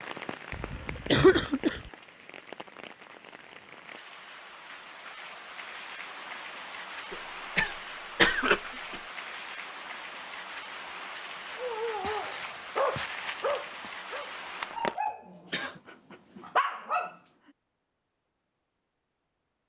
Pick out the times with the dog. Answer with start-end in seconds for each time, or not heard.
11.6-17.1.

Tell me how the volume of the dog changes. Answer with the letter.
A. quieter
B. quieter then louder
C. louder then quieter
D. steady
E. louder
B.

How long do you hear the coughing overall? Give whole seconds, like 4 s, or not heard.
4 s.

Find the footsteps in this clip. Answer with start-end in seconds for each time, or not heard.
11.5-13.9.